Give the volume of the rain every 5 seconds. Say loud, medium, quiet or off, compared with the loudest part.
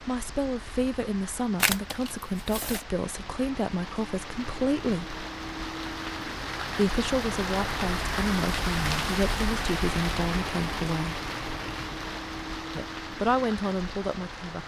medium, loud, loud.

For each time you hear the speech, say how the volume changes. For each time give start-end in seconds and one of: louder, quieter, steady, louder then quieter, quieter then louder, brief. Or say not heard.
0.1-5.2 steady
6.7-11.2 steady
12.8-14.6 brief.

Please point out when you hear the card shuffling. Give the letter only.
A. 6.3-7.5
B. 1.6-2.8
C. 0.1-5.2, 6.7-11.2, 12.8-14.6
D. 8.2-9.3
B.